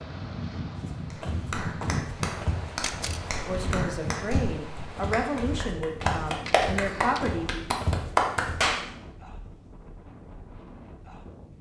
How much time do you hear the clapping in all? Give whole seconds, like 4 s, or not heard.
8 s.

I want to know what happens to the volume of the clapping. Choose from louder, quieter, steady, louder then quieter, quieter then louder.
louder.